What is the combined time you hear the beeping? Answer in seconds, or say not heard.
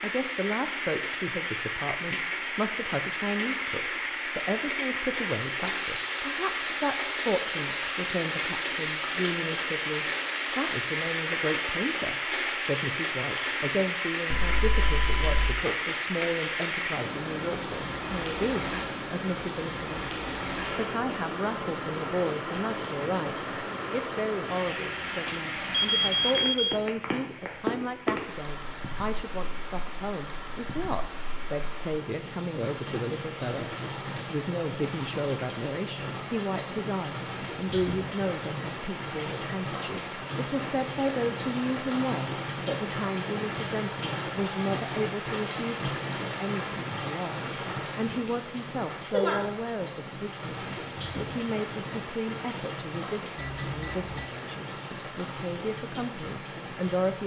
4 s.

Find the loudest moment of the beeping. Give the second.
26 s.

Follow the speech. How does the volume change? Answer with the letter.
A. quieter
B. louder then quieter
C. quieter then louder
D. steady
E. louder
D.